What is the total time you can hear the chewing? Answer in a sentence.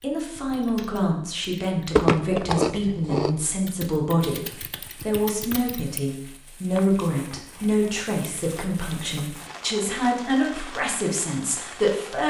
You can hear the chewing for 4 seconds altogether.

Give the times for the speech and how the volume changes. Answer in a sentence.
The speech can be heard from 0.0 to 12.2 s, at a steady volume.